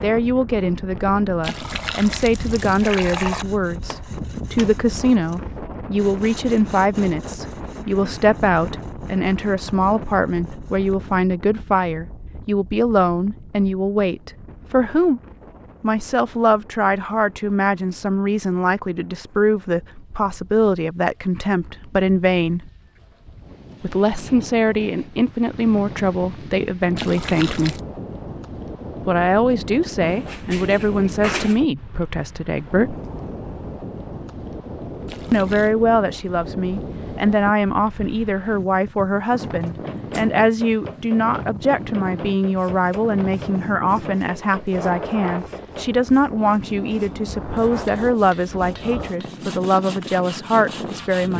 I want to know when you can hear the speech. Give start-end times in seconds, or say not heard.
0.0-15.2, 15.8-22.7, 23.8-27.8, 29.1-33.0, 35.3-51.3.